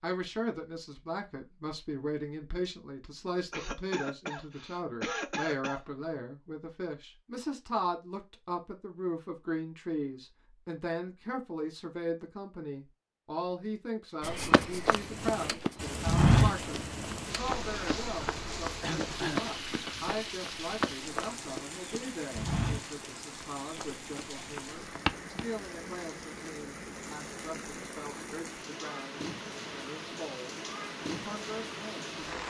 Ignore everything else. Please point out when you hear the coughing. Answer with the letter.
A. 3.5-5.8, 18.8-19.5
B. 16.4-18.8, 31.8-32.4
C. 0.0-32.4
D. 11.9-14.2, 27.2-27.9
A.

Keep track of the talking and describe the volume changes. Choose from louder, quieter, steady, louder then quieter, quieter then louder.
quieter.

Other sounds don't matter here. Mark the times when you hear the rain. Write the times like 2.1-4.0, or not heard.
14.9-32.4.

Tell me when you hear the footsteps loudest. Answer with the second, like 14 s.
16 s.